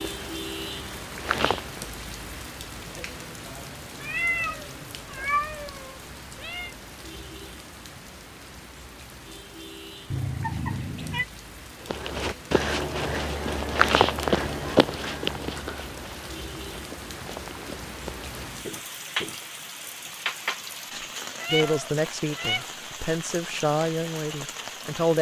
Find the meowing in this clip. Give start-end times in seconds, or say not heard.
4.0-6.7, 10.1-11.2, 21.4-22.6.